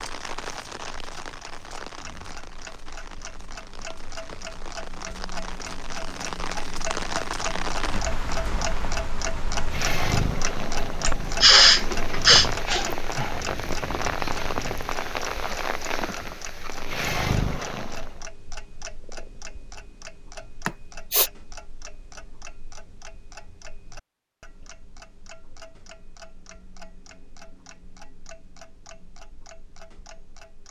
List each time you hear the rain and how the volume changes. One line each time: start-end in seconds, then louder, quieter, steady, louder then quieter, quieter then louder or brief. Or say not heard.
0.0-18.2 louder.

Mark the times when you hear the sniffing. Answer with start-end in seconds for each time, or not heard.
11.1-12.8, 20.6-21.3.